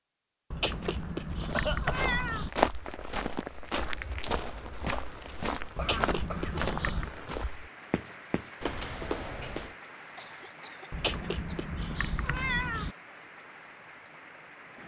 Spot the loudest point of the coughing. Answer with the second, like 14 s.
2 s.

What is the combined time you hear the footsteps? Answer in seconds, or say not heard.
9 s.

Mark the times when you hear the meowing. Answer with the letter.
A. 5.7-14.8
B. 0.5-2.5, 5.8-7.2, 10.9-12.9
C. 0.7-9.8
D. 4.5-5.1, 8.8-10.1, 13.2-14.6
B.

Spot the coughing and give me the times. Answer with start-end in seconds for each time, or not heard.
1.5-2.1, 5.8-7.1, 10.2-11.6.